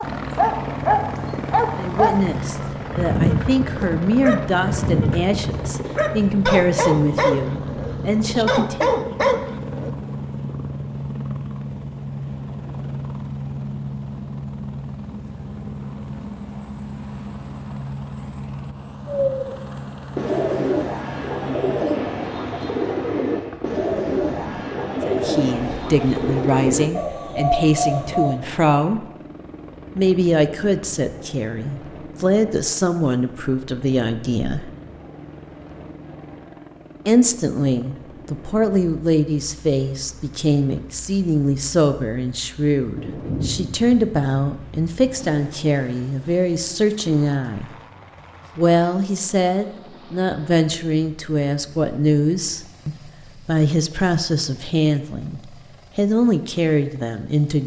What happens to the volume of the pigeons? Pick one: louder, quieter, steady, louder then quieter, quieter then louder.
steady.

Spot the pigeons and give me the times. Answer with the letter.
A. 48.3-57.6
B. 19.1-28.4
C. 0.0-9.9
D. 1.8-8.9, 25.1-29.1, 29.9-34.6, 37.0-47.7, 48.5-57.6
B.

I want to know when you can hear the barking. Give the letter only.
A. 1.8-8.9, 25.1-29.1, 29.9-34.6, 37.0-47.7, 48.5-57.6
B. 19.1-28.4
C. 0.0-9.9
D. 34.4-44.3
C.